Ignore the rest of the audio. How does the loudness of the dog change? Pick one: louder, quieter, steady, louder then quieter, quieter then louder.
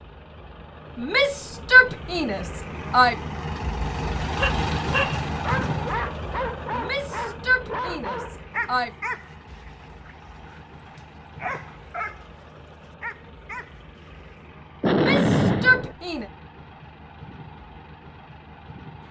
quieter.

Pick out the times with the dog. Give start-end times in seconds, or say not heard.
4.2-14.3.